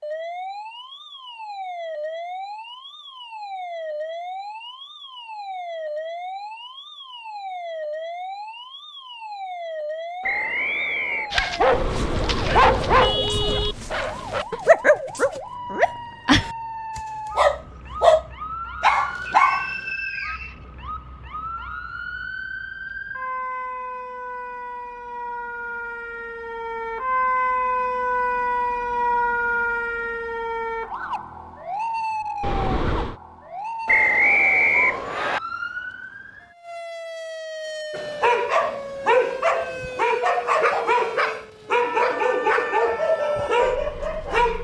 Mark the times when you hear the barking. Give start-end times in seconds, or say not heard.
11.3-19.7, 37.9-44.5.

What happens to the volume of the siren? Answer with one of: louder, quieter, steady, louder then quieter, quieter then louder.
louder then quieter.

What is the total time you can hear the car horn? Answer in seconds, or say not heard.
3 s.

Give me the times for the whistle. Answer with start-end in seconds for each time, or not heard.
10.2-11.3, 19.2-20.6, 33.9-35.4.